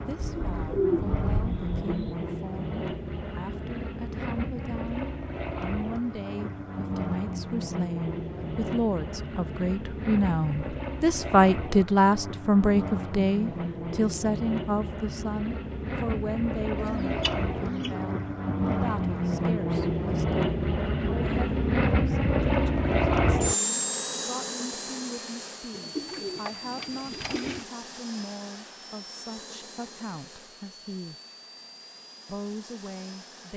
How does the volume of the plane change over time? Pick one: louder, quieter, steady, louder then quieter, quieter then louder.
louder then quieter.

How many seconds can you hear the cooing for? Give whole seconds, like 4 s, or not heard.
5 s.